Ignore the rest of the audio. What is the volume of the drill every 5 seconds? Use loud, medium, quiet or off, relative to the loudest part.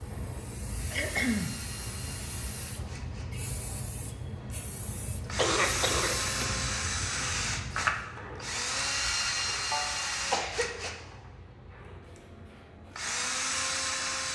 quiet, loud, loud.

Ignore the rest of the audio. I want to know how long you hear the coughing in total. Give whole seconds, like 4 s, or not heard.
3 s.